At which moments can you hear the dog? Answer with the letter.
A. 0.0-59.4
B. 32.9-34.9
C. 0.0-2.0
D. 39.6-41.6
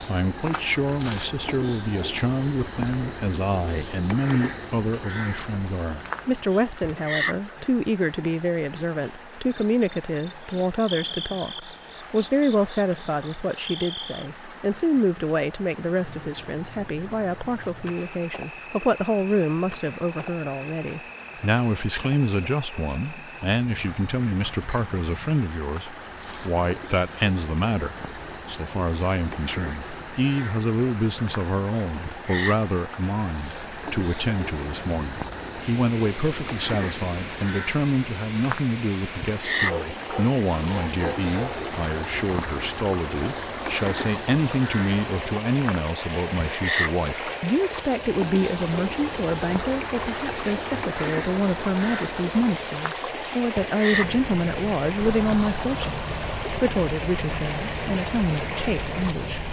D.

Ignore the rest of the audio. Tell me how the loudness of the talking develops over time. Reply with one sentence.
The loudness of the talking stays about the same.